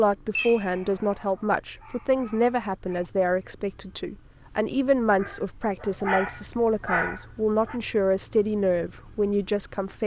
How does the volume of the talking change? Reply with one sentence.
The volume of the talking stays about the same.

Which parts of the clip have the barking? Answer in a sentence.
You can hear the barking from 0.3 to 3.0 s and from 5.2 to 7.8 s.